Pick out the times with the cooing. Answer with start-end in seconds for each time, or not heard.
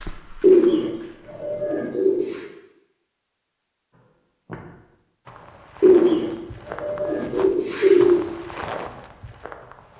0.4-2.4, 5.8-8.2.